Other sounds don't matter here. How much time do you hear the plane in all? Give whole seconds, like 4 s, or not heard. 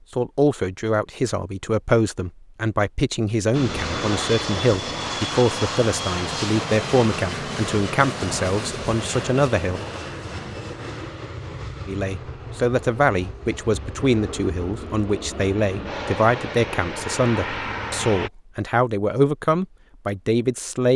15 s.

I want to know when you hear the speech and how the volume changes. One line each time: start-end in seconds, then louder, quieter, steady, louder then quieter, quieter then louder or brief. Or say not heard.
0.1-9.8 steady
11.8-20.9 steady.